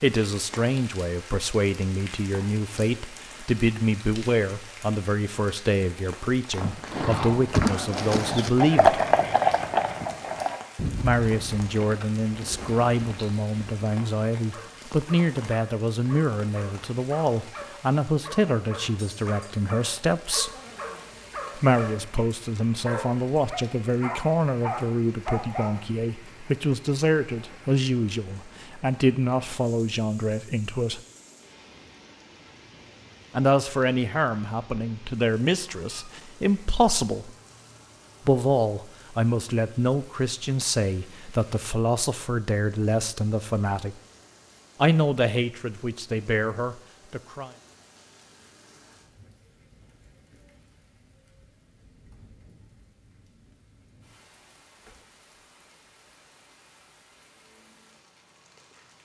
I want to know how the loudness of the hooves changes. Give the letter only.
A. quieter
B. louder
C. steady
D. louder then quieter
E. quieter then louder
D.